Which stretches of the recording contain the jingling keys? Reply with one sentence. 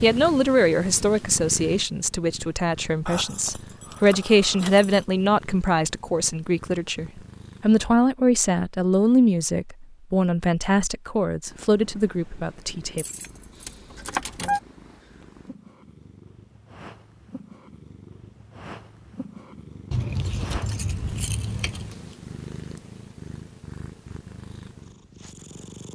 You can hear the jingling keys from 3.0 to 5.0 s, from 12.9 to 14.6 s and from 19.9 to 21.9 s.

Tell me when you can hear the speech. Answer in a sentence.
The speech can be heard from 0.0 to 13.1 s.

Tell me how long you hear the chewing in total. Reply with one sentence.
You can't hear the chewing here.